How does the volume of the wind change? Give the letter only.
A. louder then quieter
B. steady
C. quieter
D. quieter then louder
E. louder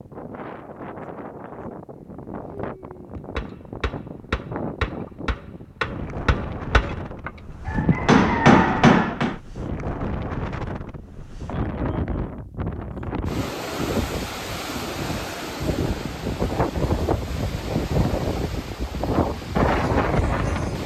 E.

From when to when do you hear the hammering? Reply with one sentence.
You can hear the hammering from 3.1 to 9.3 s.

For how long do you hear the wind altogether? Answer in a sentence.
The wind can be heard for 21 seconds in total.